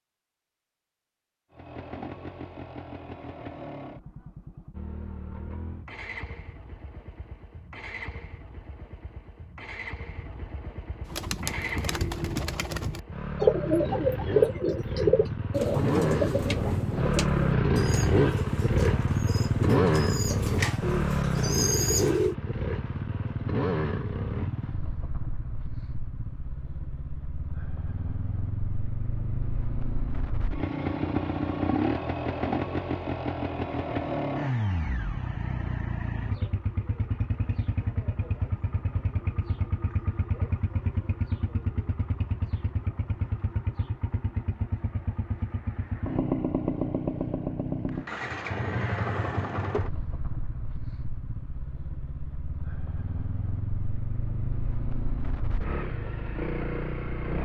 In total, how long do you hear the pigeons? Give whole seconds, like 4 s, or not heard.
11 s.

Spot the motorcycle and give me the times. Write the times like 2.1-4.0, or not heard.
1.5-57.3.